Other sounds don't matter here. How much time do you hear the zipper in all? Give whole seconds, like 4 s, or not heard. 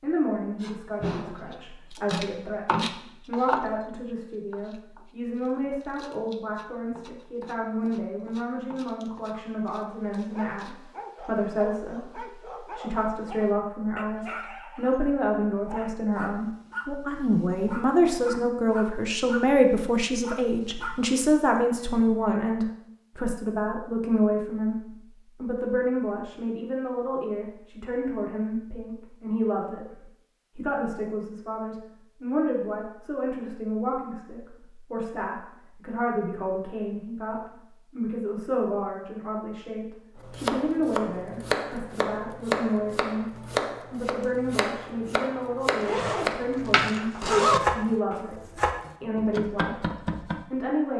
2 s.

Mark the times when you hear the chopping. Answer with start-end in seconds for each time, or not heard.
0.6-3.6, 4.5-10.8, 40.2-50.4.